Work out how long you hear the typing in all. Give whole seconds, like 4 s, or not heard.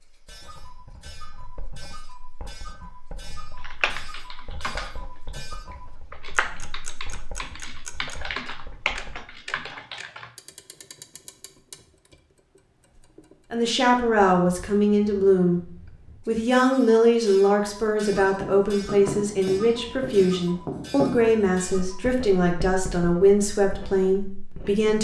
6 s.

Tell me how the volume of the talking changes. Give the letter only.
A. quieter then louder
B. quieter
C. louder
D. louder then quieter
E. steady
E.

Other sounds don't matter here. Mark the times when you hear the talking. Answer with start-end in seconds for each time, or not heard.
13.5-24.9.